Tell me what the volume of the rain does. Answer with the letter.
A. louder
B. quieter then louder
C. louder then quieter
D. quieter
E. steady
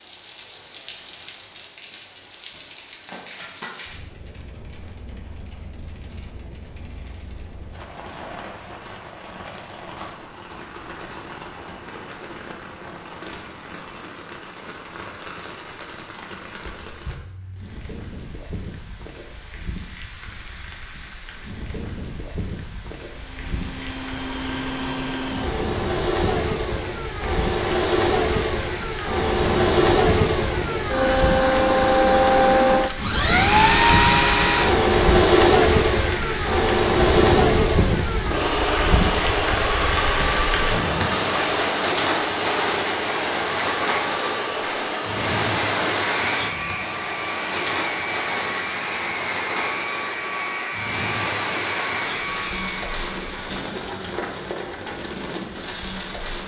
A.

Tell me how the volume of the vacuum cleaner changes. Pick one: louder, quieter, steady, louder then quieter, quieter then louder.
louder then quieter.